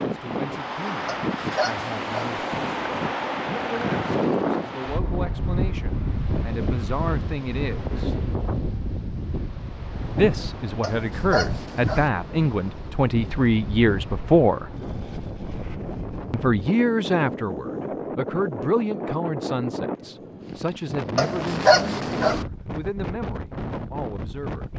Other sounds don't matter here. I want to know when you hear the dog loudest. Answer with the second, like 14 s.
22 s.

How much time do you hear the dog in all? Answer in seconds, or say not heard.
4 s.